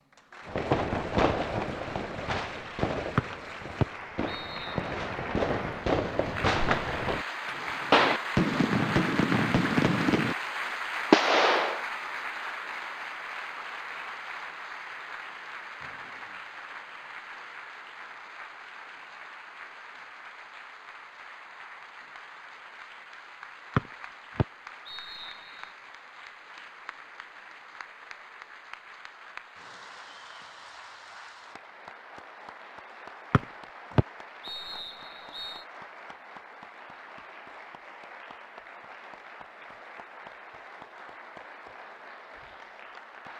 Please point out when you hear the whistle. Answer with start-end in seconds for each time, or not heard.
3.1-5.0, 23.8-25.6, 33.3-35.6.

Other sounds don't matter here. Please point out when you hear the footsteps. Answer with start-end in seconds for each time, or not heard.
not heard.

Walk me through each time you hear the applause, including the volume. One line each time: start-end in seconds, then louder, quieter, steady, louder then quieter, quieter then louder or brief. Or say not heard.
0.0-43.3 quieter.